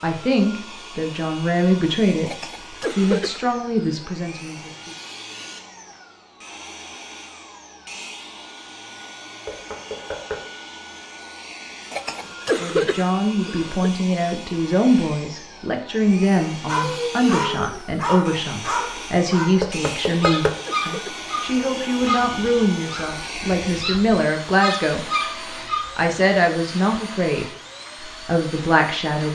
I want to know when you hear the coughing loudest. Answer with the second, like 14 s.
13 s.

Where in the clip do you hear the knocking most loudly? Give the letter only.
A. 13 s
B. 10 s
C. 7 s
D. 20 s
D.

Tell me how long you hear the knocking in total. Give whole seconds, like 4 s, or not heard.
2 s.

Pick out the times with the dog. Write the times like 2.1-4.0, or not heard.
16.6-26.1.